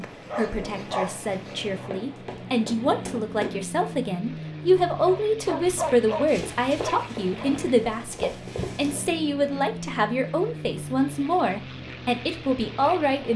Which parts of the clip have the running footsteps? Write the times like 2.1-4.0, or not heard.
1.9-3.5, 6.2-8.9.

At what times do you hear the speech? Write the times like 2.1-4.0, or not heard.
0.0-13.3.